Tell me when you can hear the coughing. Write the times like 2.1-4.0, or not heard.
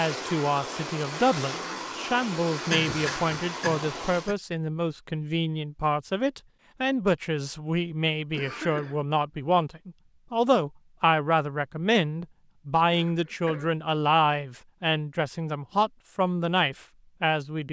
2.7-4.3, 8.3-9.0, 12.9-13.7.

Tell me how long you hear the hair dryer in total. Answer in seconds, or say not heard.
4 s.